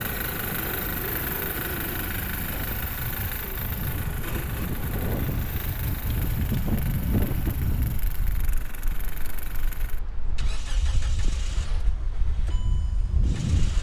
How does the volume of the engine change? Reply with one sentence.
The volume of the engine goes down.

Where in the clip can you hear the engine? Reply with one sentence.
The engine can be heard from 0.0 to 13.7 s.